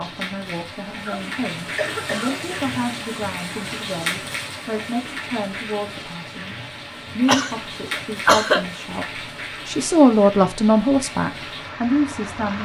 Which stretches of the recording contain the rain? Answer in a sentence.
You can hear the rain from 0.0 to 12.6 s.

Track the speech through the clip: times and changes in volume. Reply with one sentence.
The speech can be heard from 0.0 to 12.6 s, getting louder.